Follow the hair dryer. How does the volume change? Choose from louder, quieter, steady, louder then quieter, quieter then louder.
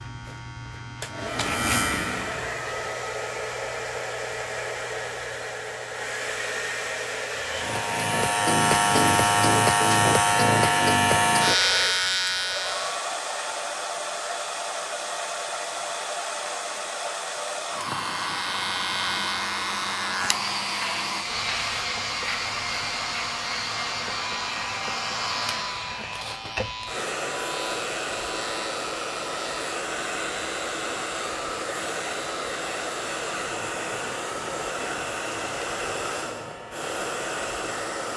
steady.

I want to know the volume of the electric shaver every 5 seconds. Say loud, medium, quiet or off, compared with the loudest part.
medium, loud, loud, medium, medium, quiet, quiet, quiet.